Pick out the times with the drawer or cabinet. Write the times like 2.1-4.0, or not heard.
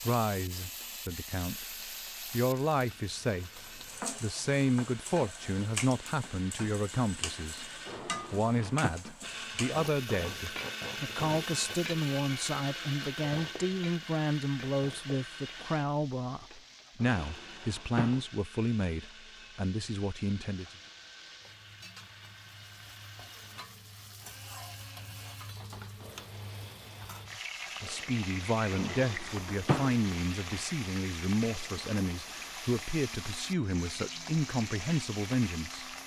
7.8-8.9, 17.0-18.2, 28.7-30.0.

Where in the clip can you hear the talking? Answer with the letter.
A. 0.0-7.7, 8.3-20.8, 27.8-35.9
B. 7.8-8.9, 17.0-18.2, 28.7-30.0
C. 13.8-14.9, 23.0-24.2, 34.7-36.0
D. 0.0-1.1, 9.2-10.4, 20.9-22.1
A.